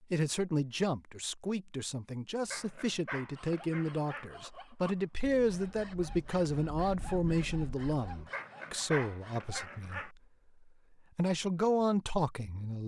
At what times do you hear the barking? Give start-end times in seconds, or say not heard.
2.5-4.3, 8.3-10.1.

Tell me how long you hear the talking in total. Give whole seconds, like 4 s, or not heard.
12 s.